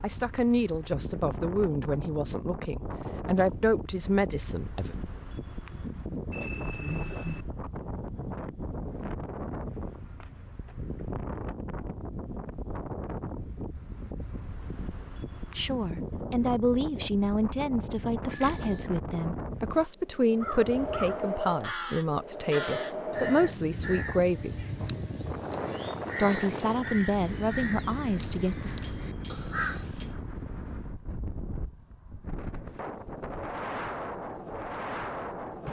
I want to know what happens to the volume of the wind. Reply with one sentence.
The loudness of the wind stays about the same.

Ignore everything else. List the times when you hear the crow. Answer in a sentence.
You can hear the crow from 20.4 to 30.2 s.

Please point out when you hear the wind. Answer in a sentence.
The wind can be heard from 0.0 to 35.6 s.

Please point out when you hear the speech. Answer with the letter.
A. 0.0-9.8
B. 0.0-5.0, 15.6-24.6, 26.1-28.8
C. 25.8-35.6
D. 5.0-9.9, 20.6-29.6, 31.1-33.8
B.